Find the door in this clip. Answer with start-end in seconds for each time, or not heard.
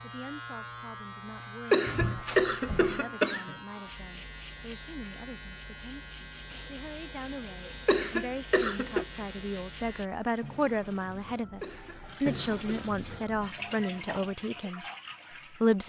1.9-3.0.